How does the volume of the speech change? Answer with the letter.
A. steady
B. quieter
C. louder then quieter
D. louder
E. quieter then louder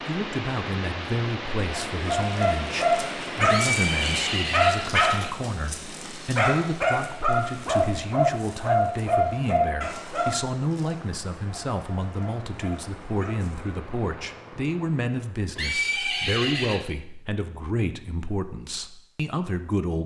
A.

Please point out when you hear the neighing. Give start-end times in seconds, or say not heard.
3.5-5.3, 15.6-16.8.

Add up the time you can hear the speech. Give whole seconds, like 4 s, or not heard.
20 s.